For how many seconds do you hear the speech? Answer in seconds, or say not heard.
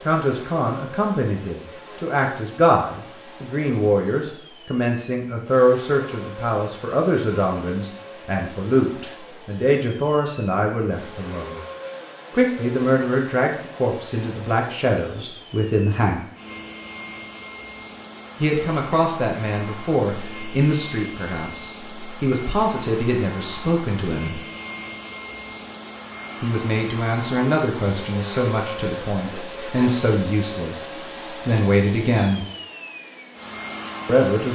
28 s.